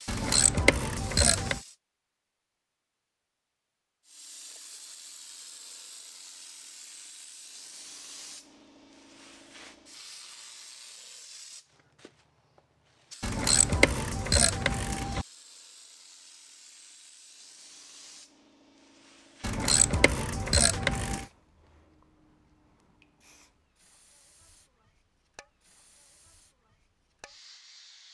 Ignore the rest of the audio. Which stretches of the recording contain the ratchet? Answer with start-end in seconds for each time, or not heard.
0.1-1.6, 13.2-15.2, 19.4-21.2.